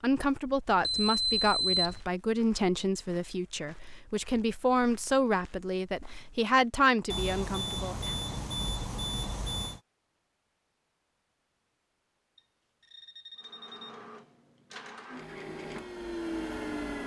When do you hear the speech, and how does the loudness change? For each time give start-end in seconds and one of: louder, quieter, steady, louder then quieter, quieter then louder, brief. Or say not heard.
0.0-8.2 steady.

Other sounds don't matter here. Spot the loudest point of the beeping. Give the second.
2 s.